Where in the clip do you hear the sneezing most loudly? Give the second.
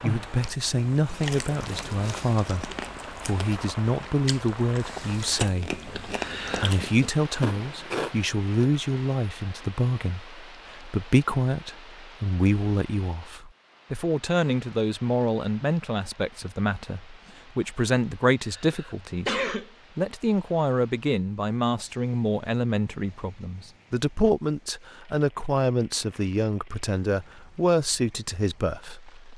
19 s.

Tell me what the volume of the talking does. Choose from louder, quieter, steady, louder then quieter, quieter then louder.
steady.